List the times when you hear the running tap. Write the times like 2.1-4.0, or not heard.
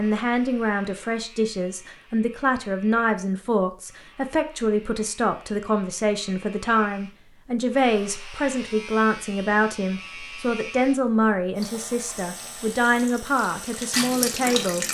11.6-14.8.